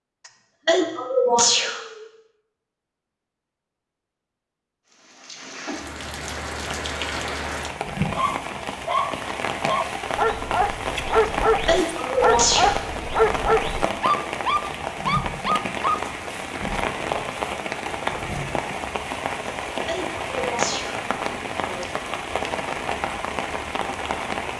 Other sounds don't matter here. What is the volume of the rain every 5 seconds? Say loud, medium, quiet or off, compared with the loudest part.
off, loud, loud, loud, loud.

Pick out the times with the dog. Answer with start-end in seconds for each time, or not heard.
8.1-16.0.